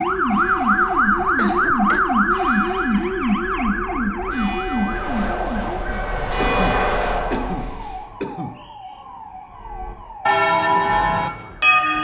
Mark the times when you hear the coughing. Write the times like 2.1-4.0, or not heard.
1.4-2.0, 6.4-8.6.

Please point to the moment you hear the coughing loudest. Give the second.
7 s.